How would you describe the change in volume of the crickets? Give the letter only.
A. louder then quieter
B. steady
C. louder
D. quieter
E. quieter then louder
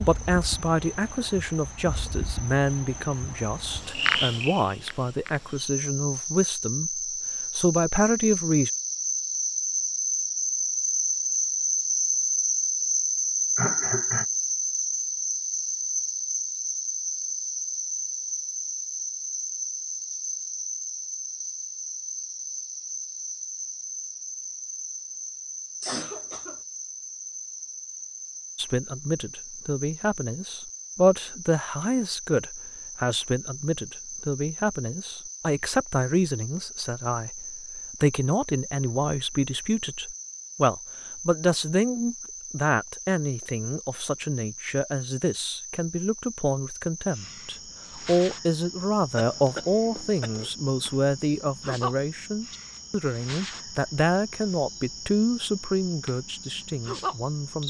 D.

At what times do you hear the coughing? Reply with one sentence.
The coughing can be heard from 13.6 to 14.2 s, from 25.8 to 26.6 s and from 49.1 to 50.5 s.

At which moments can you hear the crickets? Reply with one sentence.
The crickets can be heard from 0.0 to 57.6 s.